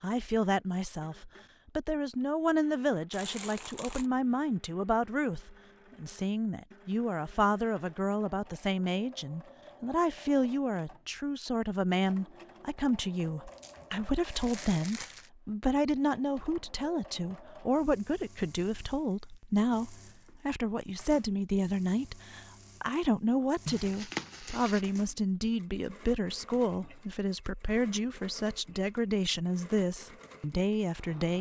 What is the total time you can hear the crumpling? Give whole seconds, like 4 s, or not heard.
4 s.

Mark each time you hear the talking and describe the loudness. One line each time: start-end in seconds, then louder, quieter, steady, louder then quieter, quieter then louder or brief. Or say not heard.
0.0-31.3 steady.